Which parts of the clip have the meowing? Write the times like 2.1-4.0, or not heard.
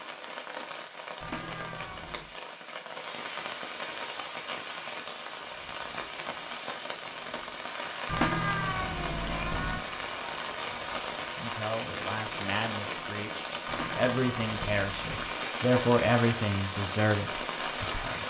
1.2-2.4, 8.1-9.8, 13.7-15.4.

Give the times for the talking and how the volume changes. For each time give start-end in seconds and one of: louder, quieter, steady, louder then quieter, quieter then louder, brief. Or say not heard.
11.3-18.2 louder then quieter.